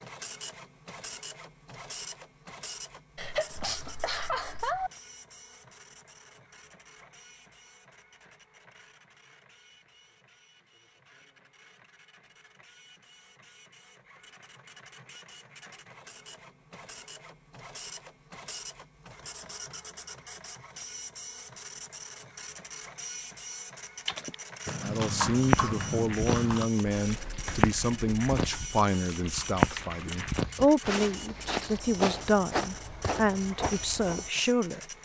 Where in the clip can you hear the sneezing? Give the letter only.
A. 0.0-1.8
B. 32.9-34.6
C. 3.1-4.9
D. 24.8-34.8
C.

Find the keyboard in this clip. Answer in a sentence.
The keyboard can be heard from 24.1 to 30.4 s.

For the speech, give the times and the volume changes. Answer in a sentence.
The speech can be heard from 24.8 to 34.8 s, at a steady volume.